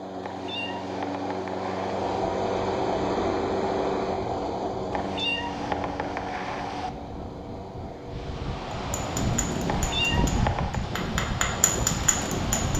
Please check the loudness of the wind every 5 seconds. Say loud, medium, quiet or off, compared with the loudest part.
quiet, medium, loud.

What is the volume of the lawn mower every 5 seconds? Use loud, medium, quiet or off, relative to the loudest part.
loud, medium, off.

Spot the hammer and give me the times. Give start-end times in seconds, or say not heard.
8.7-12.7.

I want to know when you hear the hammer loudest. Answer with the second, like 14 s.
12 s.